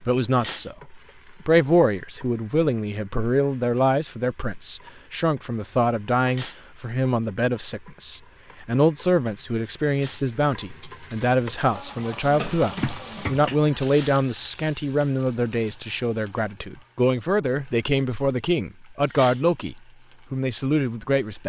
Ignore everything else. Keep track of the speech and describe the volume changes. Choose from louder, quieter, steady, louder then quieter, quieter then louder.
steady.